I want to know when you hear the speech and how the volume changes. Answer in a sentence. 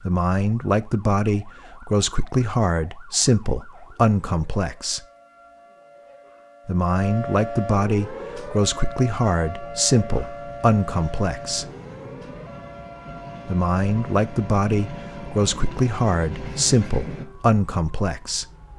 You can hear the speech from 0.0 to 5.0 s, at a steady volume; from 6.7 to 11.7 s, at a steady volume; and from 13.4 to 18.4 s, at a steady volume.